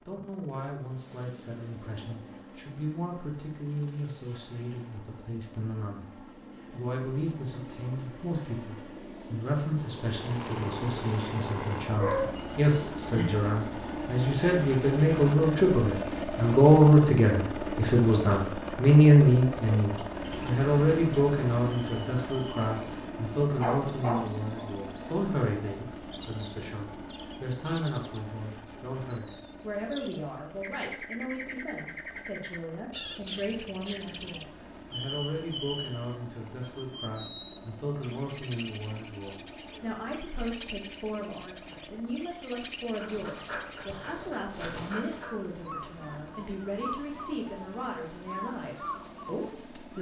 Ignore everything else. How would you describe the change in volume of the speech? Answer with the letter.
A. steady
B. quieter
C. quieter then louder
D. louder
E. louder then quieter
E.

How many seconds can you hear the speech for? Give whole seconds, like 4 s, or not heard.
50 s.